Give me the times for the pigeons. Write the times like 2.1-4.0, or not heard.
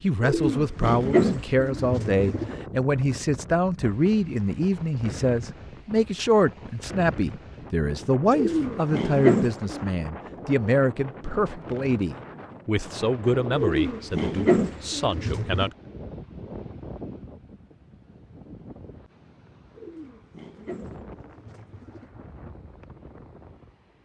0.2-2.5, 8.3-9.9, 13.6-15.7, 19.8-22.1.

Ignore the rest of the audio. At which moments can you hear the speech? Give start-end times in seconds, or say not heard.
0.0-15.8.